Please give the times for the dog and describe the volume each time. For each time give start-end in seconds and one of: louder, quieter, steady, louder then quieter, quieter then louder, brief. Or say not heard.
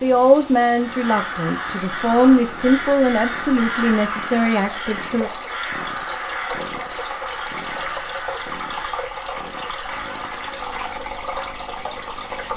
not heard.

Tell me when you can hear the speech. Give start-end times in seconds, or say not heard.
0.0-5.3.